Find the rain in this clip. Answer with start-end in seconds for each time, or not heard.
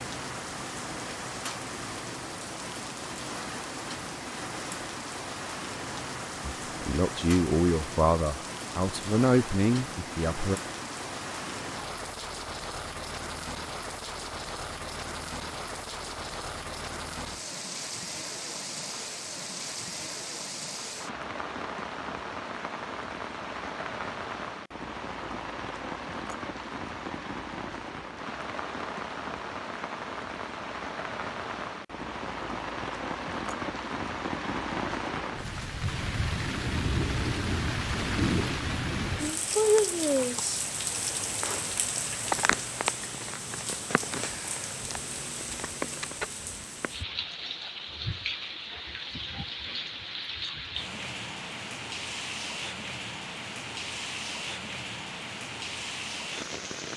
0.0-56.9.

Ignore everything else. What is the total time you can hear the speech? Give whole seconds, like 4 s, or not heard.
4 s.